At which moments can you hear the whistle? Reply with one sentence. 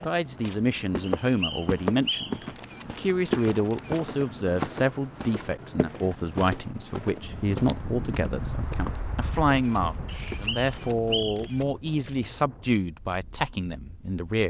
You can hear the whistle from 1.0 to 2.5 s and from 10.2 to 11.6 s.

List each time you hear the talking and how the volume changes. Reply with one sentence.
You can hear the talking from 0.0 to 14.4 s, at a steady volume.